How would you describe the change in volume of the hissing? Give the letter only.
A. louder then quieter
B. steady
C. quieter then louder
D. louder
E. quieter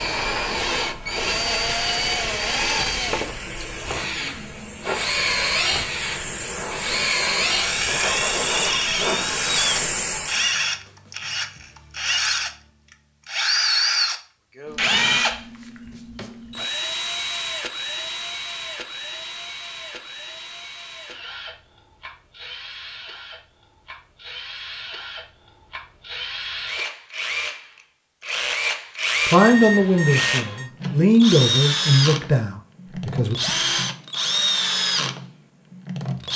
D.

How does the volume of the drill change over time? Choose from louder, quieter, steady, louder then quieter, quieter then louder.
quieter then louder.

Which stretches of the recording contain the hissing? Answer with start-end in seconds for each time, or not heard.
0.0-10.6.